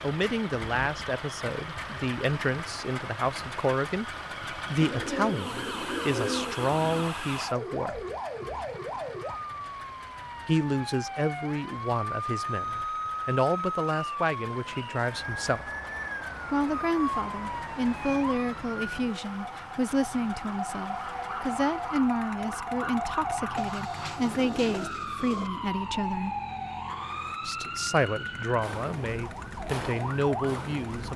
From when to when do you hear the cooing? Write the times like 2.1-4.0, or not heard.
4.8-7.0, 23.6-25.5.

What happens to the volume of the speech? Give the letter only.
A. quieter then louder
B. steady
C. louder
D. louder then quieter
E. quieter
B.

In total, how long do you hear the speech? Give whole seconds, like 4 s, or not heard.
27 s.